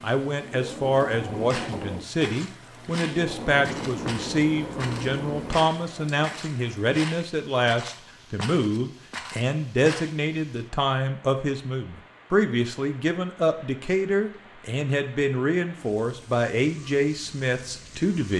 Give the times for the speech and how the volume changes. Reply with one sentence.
You can hear the speech from 0.0 to 18.3 s, at a steady volume.